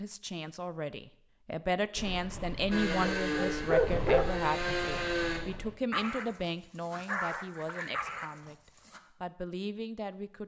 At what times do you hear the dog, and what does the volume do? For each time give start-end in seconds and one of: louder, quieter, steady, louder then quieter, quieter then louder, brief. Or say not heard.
1.9-9.0 louder then quieter.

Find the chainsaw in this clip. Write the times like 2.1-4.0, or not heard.
2.7-5.4.